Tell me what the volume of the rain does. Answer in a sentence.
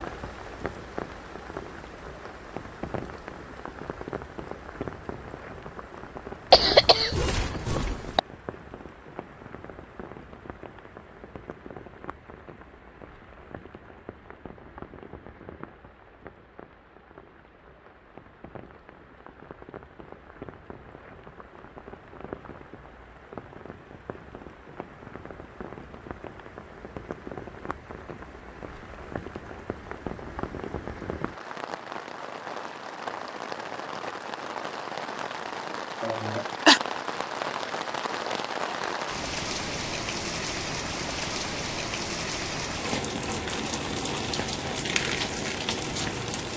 The loudness of the rain goes down, then up.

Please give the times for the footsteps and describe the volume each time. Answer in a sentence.
You can't hear the footsteps here.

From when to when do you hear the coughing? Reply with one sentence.
You can hear the coughing from 6.5 to 8.2 s and from 36.0 to 36.8 s.